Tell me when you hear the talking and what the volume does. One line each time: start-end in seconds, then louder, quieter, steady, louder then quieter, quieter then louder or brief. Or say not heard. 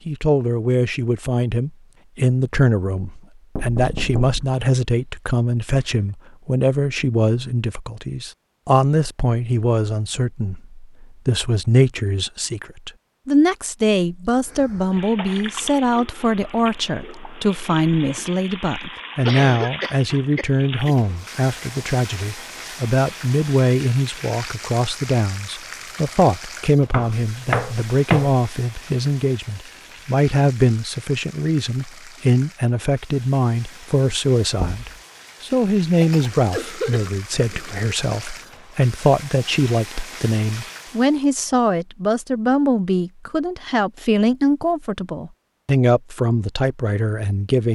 0.1-47.6 steady.